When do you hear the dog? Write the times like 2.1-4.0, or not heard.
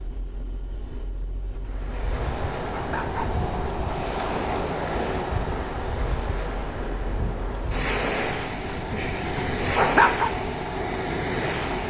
1.6-3.4, 8.9-10.3.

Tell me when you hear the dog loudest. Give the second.
10 s.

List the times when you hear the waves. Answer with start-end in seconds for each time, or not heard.
1.6-11.8.